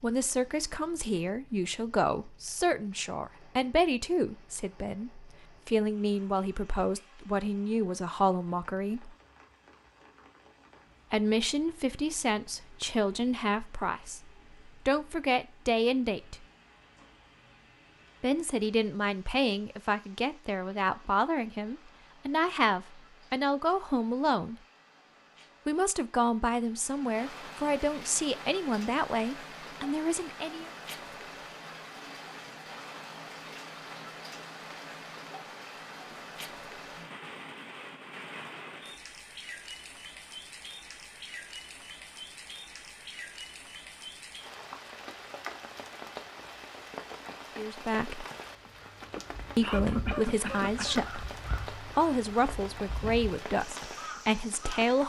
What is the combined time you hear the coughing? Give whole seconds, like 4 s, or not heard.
2 s.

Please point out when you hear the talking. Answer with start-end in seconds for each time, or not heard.
0.0-9.1, 11.1-16.4, 18.2-24.6, 25.6-30.7, 47.5-48.2, 49.5-55.0.